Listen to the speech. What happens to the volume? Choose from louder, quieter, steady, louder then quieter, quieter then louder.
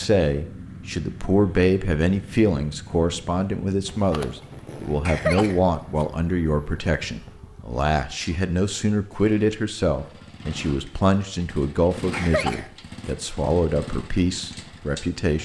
steady.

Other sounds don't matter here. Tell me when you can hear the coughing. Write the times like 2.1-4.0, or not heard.
5.0-6.0, 12.1-13.1.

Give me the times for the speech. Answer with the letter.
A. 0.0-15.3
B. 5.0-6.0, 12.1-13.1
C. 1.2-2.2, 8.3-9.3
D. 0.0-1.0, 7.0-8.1
A.